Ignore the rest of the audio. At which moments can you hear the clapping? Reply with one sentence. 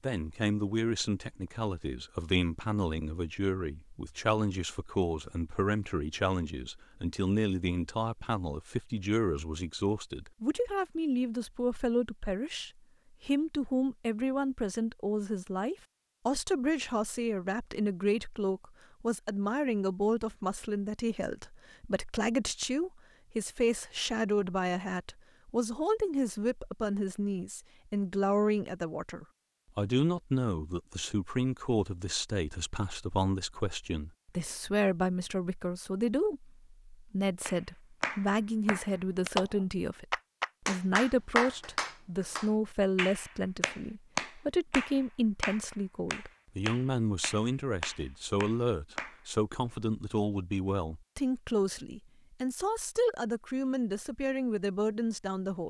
The clapping can be heard from 37.5 to 39.5 s and from 40.1 to 49.2 s.